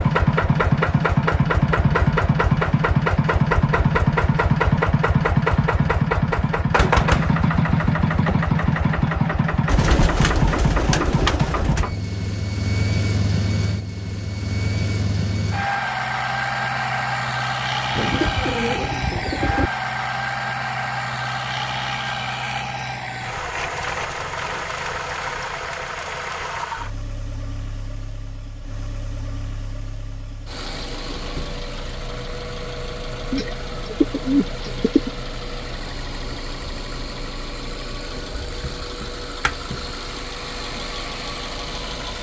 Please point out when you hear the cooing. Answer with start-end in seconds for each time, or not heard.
9.7-11.9, 17.9-19.7, 33.3-35.1.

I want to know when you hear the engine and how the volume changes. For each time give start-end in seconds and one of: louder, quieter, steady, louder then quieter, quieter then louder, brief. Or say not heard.
0.0-42.1 quieter.